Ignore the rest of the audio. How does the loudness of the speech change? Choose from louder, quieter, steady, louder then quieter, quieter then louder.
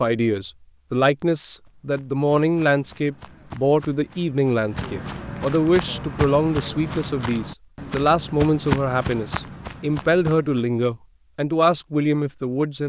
steady.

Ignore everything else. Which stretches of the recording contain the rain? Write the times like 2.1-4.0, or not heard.
not heard.